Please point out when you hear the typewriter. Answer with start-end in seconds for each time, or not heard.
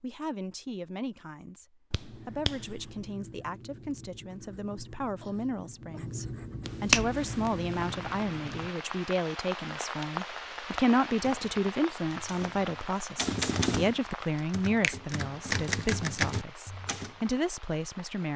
11.1-17.1.